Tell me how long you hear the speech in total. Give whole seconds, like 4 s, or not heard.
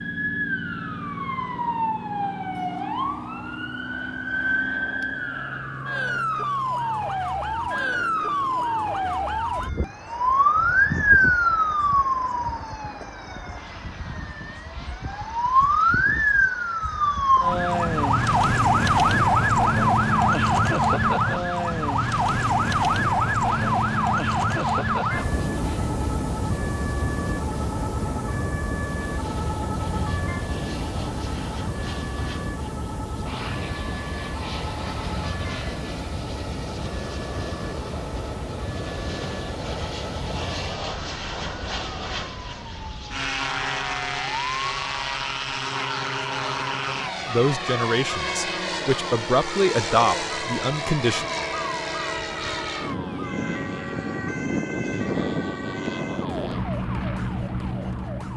4 s.